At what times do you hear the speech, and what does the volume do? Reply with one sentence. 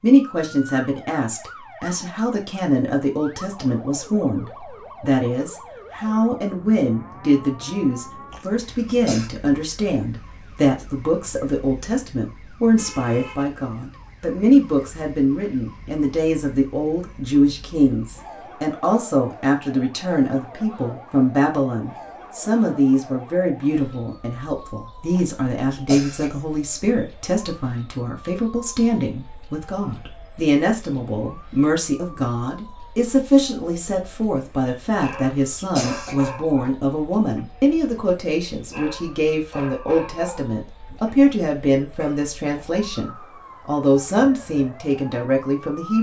The speech can be heard from 0.0 to 45.9 s, at a steady volume.